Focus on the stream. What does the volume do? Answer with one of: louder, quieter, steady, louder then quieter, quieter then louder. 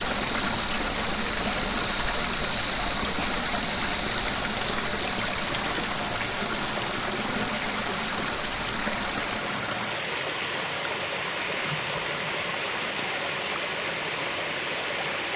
steady.